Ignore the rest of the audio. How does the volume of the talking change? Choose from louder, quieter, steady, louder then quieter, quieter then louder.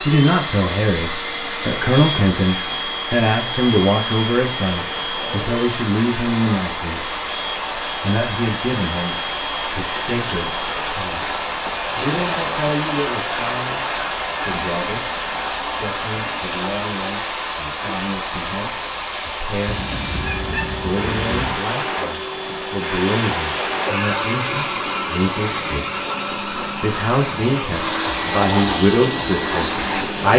quieter then louder.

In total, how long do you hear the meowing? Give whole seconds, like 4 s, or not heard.
2 s.